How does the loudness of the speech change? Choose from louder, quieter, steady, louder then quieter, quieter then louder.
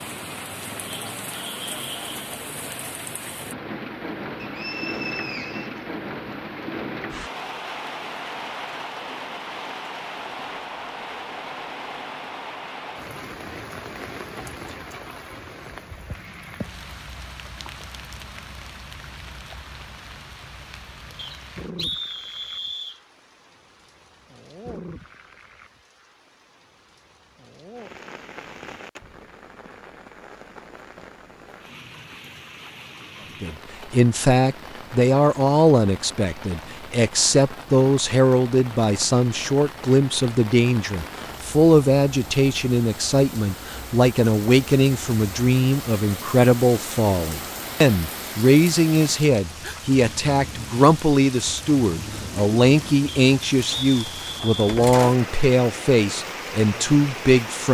steady.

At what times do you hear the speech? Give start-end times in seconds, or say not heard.
33.4-57.7.